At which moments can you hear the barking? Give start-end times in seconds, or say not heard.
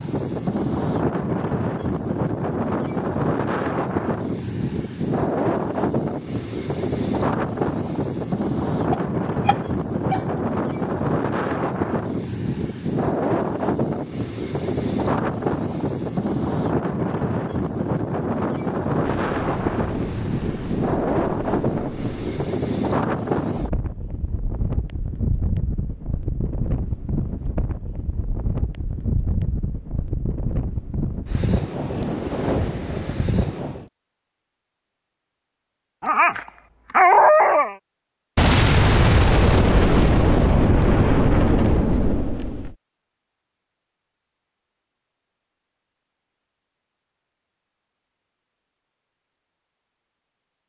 8.9-10.2, 36.0-37.8.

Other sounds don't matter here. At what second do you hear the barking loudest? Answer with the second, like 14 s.
37 s.